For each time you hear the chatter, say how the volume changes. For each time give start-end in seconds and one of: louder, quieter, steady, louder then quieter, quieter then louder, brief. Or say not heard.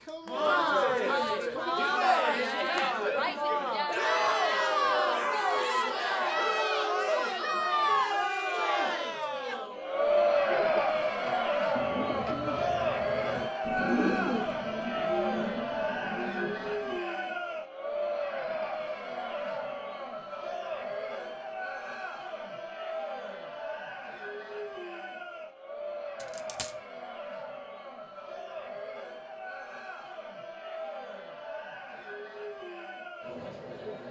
0.1-34.0 quieter.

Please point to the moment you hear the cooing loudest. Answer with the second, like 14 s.
14 s.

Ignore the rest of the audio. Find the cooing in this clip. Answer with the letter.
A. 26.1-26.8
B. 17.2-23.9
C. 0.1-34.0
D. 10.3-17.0
D.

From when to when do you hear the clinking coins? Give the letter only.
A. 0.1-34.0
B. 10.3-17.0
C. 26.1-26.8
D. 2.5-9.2
C.